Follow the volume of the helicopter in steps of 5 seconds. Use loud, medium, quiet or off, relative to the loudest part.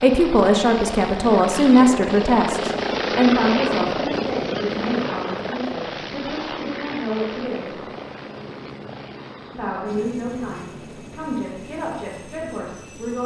loud, medium, quiet.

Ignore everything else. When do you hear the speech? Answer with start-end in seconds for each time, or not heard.
0.0-7.8, 9.5-13.2.